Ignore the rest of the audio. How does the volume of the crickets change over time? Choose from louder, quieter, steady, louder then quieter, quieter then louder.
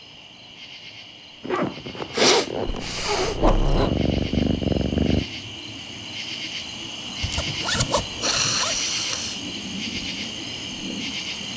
louder.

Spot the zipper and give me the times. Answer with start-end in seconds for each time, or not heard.
1.4-4.0, 7.2-8.8.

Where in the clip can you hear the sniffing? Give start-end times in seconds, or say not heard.
2.1-3.4, 8.2-9.4.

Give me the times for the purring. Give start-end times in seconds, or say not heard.
2.6-5.2.